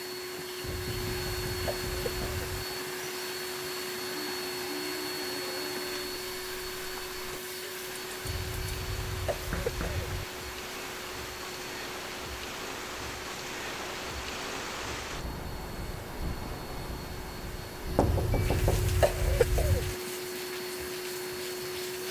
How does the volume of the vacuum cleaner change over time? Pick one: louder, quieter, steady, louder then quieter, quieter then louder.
quieter then louder.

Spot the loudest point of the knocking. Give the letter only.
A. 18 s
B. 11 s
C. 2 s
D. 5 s
A.